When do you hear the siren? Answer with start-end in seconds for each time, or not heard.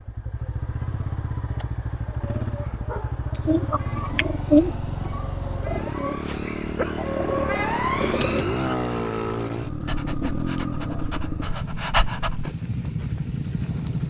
3.6-8.8.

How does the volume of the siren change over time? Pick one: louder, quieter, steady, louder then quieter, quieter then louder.
louder.